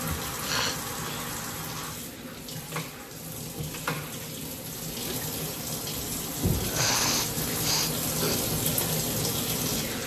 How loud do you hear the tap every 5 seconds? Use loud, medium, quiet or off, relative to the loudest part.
medium, loud.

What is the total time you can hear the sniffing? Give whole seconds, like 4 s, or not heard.
2 s.